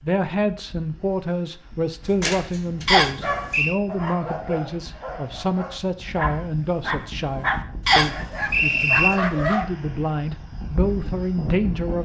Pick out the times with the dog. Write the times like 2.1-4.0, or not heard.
2.0-9.7.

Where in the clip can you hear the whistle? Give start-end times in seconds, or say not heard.
2.9-3.8, 7.8-9.1.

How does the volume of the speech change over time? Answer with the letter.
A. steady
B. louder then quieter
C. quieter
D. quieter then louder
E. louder
A.